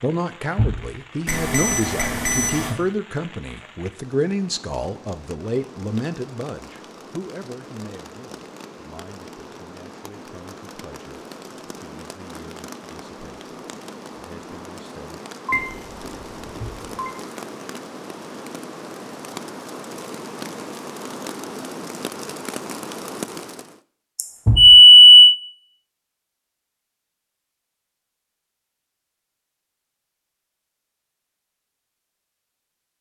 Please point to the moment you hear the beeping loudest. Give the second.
25 s.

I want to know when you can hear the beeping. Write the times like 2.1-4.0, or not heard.
1.2-2.8, 15.4-17.1, 24.1-25.4.